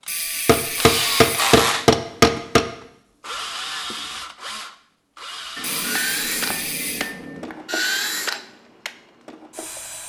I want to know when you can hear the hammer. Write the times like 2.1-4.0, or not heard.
0.5-2.6, 5.5-7.5.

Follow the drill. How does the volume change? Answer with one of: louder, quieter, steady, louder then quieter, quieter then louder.
quieter then louder.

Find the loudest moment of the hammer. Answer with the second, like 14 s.
2 s.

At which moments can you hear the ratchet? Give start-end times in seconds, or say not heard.
0.1-1.6, 5.6-7.2.